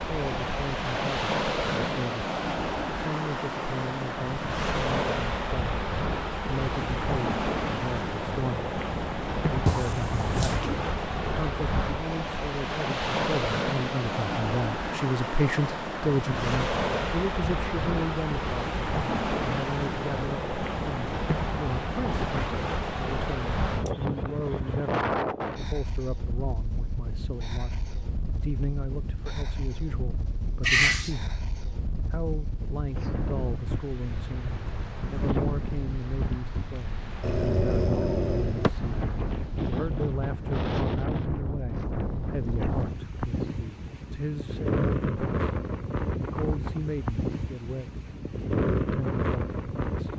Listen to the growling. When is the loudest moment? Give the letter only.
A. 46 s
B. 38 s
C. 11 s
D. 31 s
D.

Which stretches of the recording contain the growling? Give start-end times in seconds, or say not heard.
9.7-10.8, 30.6-31.1, 37.2-38.7.